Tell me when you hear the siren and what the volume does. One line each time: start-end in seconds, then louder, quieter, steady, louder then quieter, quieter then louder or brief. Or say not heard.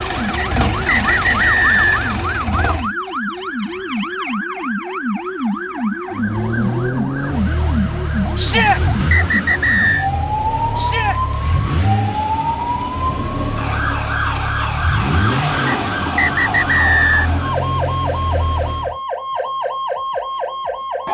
0.0-21.1 steady.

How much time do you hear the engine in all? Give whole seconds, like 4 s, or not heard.
16 s.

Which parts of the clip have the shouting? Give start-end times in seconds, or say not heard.
8.3-8.8, 10.8-11.2.